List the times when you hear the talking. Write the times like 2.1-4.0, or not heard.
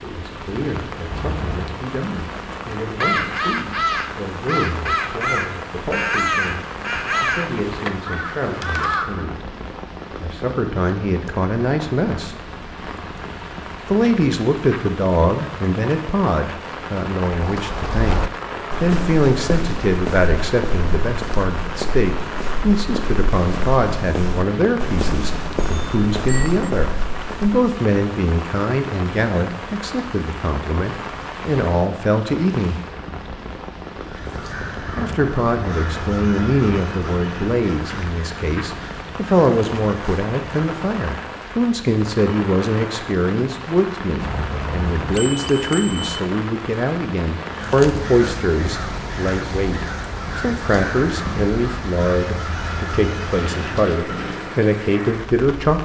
0.0-9.5, 10.2-12.3, 13.8-32.8, 35.0-55.7.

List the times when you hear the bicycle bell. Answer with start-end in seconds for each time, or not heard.
1.1-1.8, 25.6-26.6, 44.2-46.2.